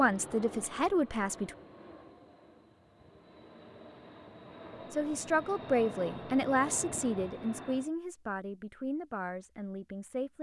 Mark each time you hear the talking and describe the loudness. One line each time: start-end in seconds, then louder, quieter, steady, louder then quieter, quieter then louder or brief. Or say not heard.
0.0-1.6 brief
4.9-10.3 quieter.